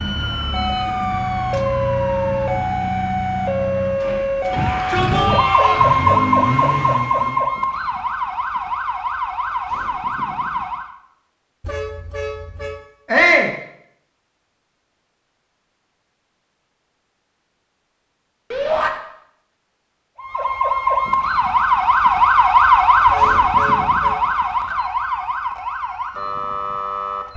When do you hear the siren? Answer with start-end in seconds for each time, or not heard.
0.0-10.9, 20.1-27.3.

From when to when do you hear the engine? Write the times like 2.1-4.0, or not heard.
0.0-7.5.